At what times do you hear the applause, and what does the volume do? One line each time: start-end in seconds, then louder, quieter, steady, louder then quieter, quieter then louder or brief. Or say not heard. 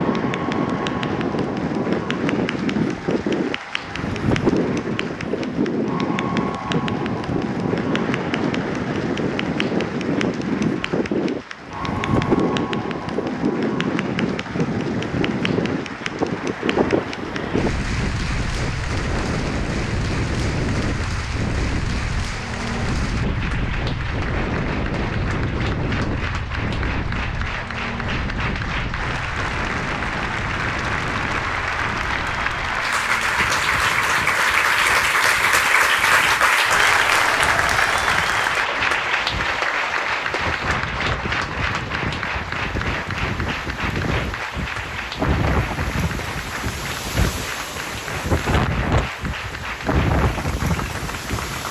0.0-51.6 louder then quieter.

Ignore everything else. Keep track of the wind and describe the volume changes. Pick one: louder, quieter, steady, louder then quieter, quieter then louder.
quieter then louder.